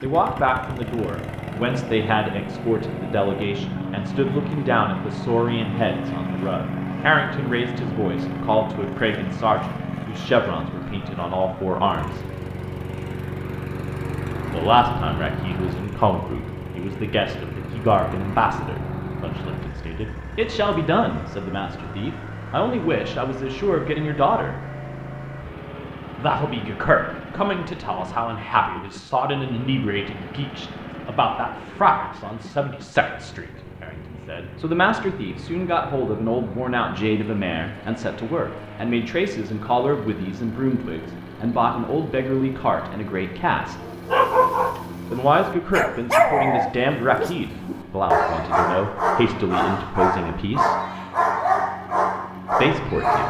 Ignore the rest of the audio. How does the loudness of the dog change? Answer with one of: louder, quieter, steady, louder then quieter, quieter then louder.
steady.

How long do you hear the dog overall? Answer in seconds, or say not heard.
9 s.